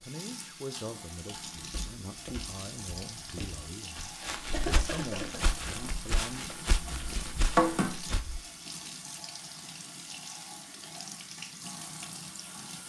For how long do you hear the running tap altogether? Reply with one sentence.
You can hear the running tap for 13 seconds altogether.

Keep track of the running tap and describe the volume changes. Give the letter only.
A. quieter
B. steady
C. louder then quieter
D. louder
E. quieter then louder
C.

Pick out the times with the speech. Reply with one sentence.
You can hear the speech from 0.0 to 6.5 s.